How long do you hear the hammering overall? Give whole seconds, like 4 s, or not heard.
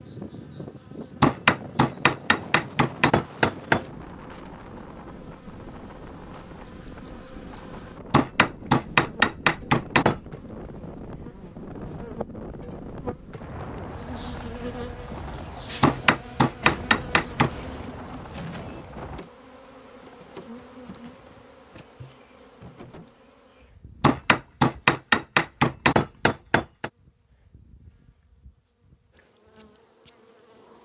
9 s.